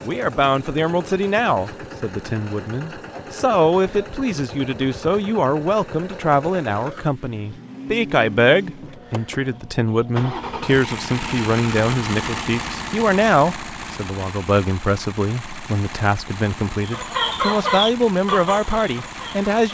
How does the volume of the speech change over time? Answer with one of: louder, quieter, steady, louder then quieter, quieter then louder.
steady.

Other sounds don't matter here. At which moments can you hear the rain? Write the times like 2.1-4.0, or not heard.
not heard.